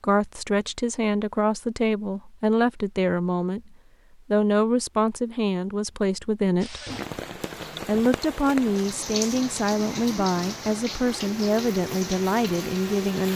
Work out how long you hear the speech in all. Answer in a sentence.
The speech can be heard for 12 seconds in total.